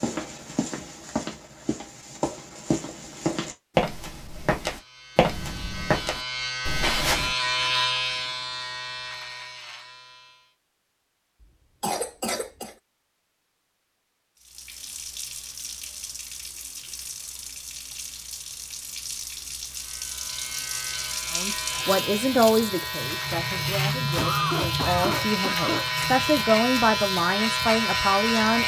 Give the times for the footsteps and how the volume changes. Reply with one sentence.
You can hear the footsteps from 0.0 to 7.3 s, getting louder.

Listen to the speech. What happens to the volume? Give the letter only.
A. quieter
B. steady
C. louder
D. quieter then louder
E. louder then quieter
D.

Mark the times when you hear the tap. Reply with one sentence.
You can hear the tap from 14.4 to 28.6 s.